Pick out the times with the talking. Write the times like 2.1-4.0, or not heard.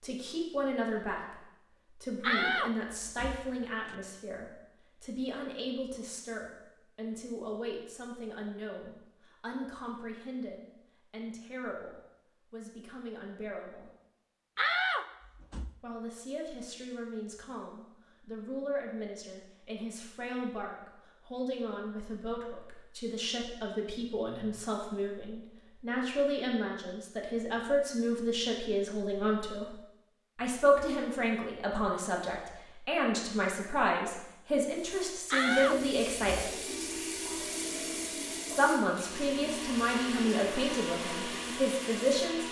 0.0-13.9, 15.8-36.6, 38.5-42.4.